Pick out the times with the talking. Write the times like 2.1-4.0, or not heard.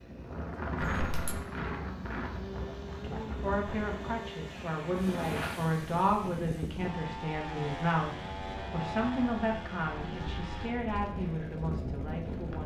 3.0-12.6.